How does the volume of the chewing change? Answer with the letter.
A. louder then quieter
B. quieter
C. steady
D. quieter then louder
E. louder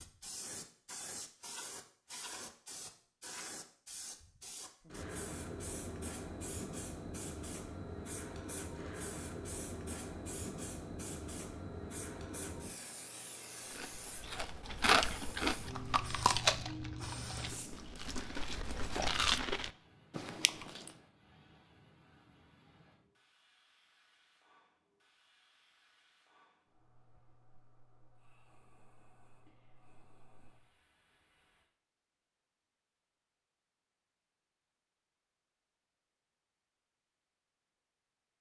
D.